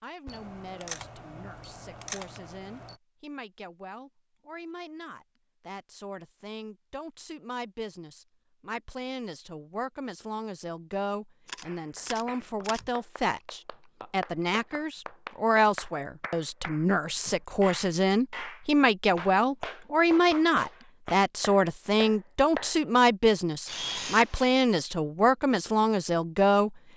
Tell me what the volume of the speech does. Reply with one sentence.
The volume of the speech goes up.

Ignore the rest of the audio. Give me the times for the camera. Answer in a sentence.
The camera can be heard from 0.2 to 3.0 s, from 11.4 to 12.9 s and from 23.6 to 24.6 s.